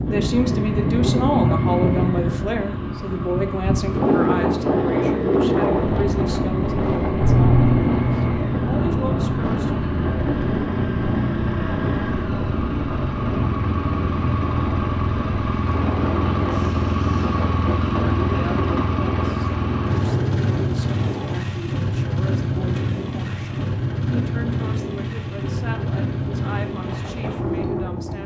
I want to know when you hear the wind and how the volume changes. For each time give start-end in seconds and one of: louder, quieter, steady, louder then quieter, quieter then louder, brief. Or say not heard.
0.0-28.2 quieter.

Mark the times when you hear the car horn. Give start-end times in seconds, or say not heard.
7.2-7.8.